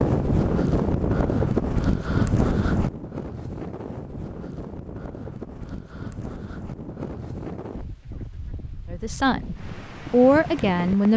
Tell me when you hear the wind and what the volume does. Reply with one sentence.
You can hear the wind from 0.0 to 11.1 s, getting quieter.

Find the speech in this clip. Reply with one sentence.
You can hear the speech from 8.9 to 11.1 s.